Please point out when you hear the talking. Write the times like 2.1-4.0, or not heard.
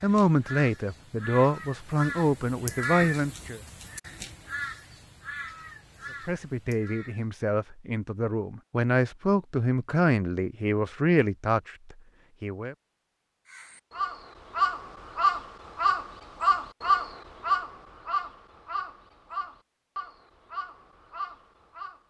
0.0-3.6, 6.2-12.8.